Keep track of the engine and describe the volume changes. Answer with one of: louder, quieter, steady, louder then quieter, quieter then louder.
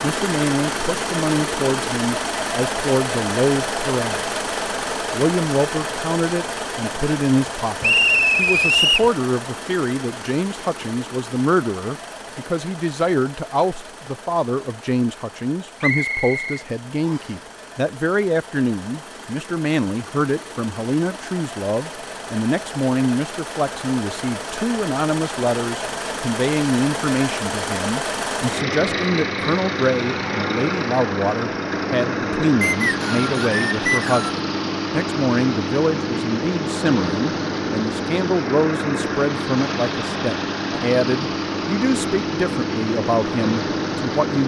quieter then louder.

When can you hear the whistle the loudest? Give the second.
8 s.